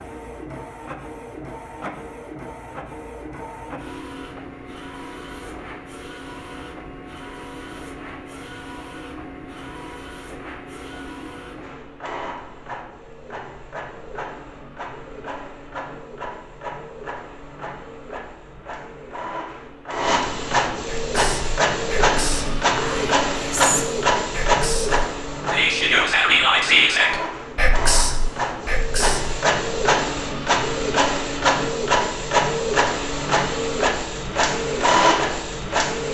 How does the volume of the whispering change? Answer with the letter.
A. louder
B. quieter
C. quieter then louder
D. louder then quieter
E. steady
D.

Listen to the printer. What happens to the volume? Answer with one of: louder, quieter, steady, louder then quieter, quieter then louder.
louder.